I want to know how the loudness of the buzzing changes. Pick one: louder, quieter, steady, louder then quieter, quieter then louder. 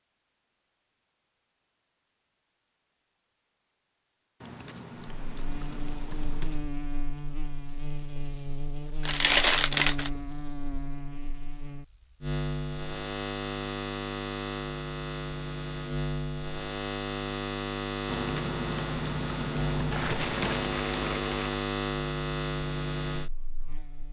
louder.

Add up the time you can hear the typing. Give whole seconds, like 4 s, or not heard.
5 s.